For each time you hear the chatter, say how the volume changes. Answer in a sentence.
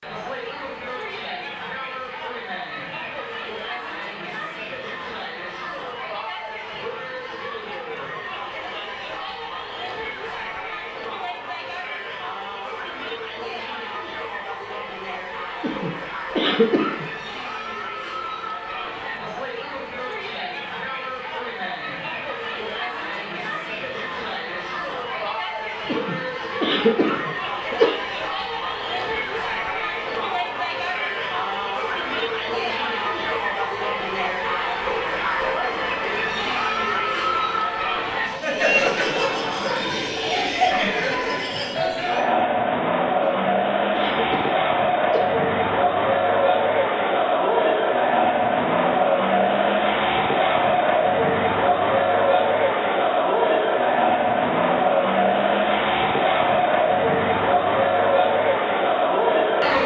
You can hear the chatter from 0.0 to 59.8 s, getting louder.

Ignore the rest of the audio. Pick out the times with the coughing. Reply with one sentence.
You can hear the coughing from 15.6 to 17.1 s, from 25.9 to 27.9 s and from 43.2 to 45.2 s.